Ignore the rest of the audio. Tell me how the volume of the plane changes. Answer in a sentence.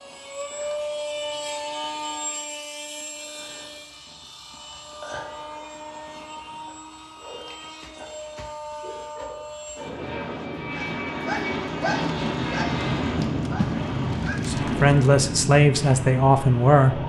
The loudness of the plane goes down, then up.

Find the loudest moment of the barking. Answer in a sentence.
The volume of the barking peaks at 12 seconds.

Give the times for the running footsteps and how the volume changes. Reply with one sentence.
The running footsteps can't be heard in this clip.